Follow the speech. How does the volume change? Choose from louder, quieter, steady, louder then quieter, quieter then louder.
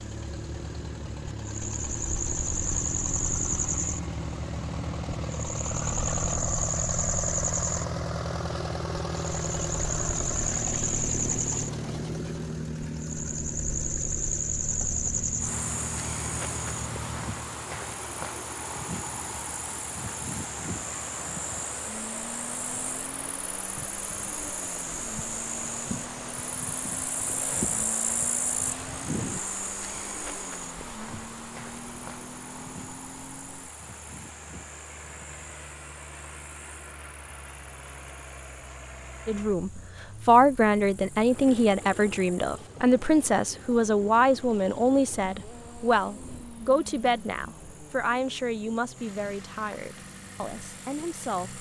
quieter.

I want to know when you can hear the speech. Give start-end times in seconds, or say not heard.
39.2-51.5.